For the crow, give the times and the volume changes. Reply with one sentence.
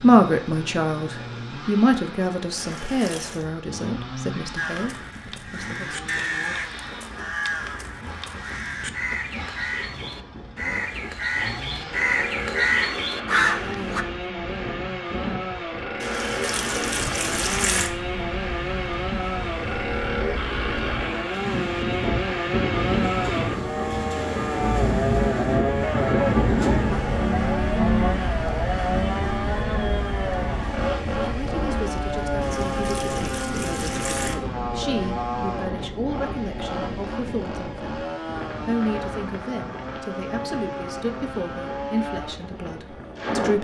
The crow can be heard from 4.5 to 14.1 s, getting louder.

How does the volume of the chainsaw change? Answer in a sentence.
The loudness of the chainsaw goes up, then down.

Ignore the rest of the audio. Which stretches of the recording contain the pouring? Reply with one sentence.
You can hear the pouring from 2.5 to 3.5 s, from 16.0 to 17.9 s and from 32.4 to 34.4 s.